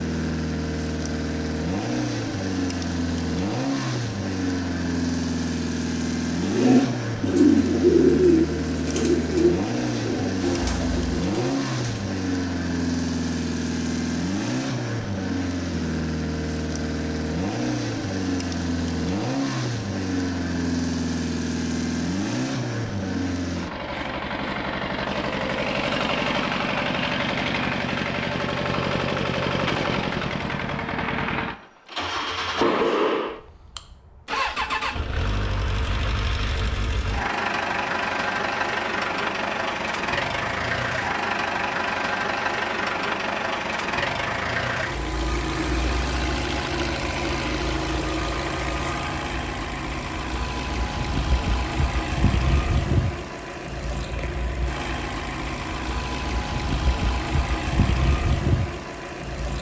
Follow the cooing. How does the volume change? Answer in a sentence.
The volume of the cooing goes down.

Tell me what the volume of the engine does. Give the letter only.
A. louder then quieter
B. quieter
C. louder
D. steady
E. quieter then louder
D.